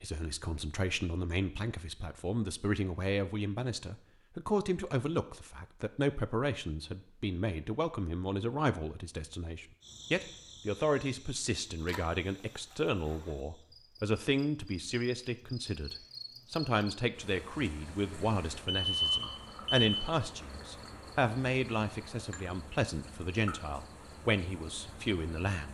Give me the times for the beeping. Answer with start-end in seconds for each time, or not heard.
18.6-20.1.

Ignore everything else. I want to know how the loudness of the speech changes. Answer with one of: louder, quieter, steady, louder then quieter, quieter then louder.
steady.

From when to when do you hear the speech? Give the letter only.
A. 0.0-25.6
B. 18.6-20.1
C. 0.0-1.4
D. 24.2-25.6
A.